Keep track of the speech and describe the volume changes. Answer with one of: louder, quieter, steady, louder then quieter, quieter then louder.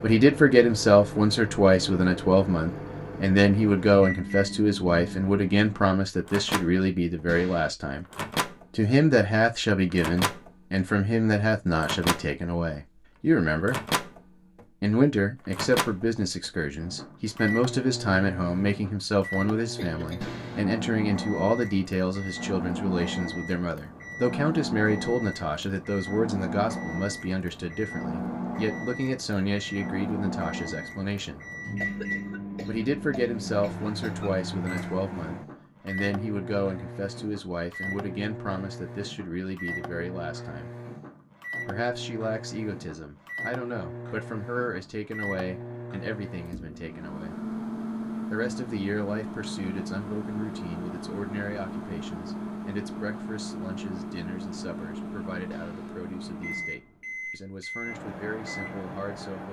quieter.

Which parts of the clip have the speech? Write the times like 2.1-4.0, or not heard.
0.0-8.1, 8.8-13.8, 14.8-31.4, 32.6-40.7, 41.6-47.4, 48.3-59.4.